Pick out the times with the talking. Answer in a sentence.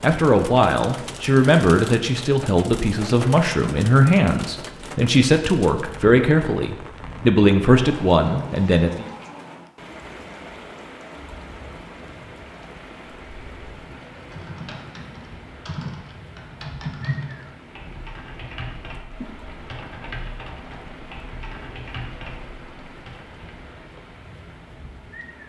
The talking can be heard from 0.0 to 9.1 s.